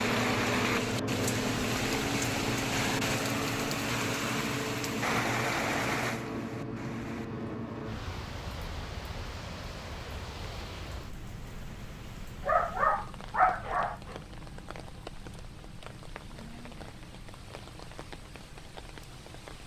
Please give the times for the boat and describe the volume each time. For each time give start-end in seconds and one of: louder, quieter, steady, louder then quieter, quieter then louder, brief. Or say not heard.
0.0-19.6 quieter.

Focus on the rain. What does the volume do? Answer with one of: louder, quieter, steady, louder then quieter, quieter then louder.
quieter.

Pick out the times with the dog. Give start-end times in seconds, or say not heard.
12.4-14.2.